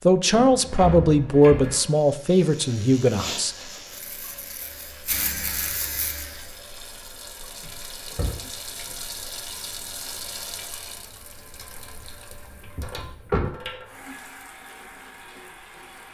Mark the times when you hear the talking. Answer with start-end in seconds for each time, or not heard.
0.1-3.5.